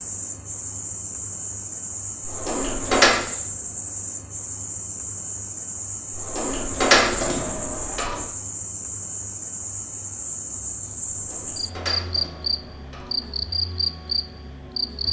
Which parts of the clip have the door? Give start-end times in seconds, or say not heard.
2.2-3.2, 6.2-8.2, 11.1-13.3.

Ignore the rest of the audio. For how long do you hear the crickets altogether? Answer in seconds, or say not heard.
15 s.